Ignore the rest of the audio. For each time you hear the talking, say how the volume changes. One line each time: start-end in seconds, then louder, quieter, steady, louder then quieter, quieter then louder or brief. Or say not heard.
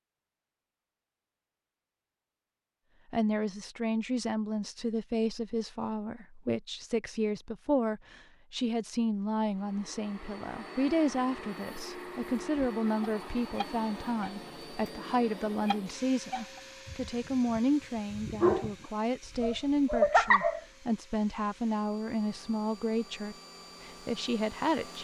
3.1-24.9 steady.